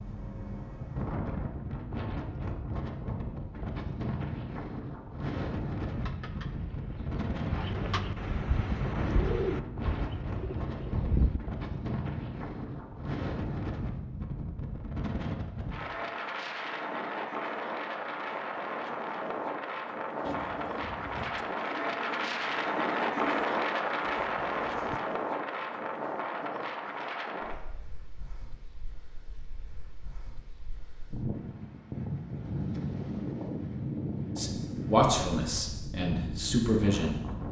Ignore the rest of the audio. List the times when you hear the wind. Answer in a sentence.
You can hear the wind from 0.0 to 37.4 s.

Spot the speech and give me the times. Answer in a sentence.
The speech can be heard from 34.4 to 37.2 s.